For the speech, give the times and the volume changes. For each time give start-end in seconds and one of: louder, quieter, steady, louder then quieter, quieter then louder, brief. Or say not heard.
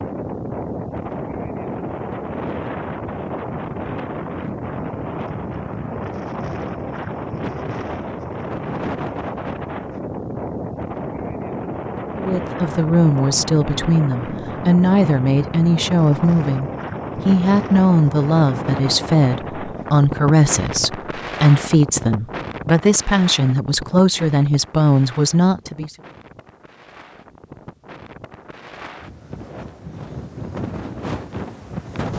12.2-25.9 steady.